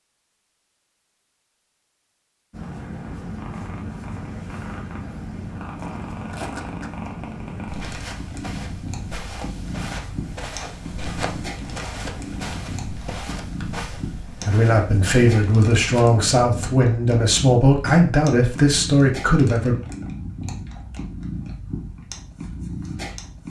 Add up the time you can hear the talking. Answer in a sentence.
The talking can be heard for 6 seconds in total.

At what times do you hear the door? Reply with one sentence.
The door can't be heard in this clip.